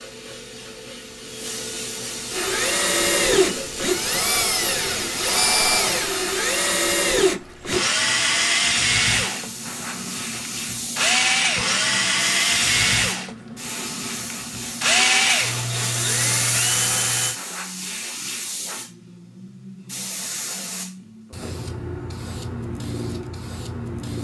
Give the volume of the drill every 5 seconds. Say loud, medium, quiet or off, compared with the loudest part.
loud, loud, loud, loud, off.